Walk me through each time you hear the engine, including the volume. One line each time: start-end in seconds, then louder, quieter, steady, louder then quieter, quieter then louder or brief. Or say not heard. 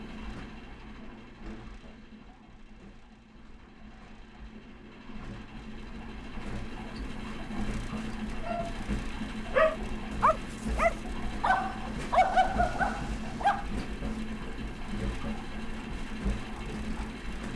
0.0-17.5 louder.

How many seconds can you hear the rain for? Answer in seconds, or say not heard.
not heard.